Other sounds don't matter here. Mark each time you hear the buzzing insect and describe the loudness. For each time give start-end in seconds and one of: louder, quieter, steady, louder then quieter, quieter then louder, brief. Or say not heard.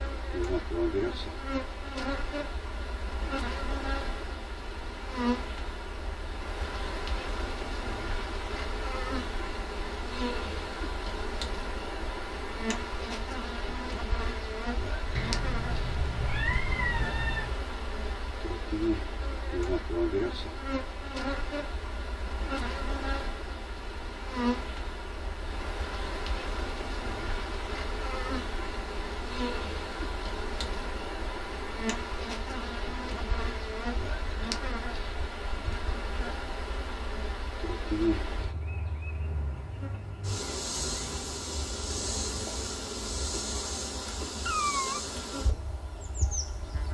0.0-46.8 steady.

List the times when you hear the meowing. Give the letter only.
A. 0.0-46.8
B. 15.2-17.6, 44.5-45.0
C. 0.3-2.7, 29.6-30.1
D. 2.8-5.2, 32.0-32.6
B.